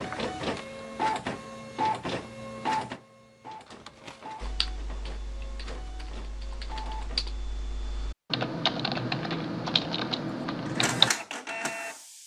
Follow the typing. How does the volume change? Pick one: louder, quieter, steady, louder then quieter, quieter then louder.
louder.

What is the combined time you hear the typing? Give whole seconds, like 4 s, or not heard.
7 s.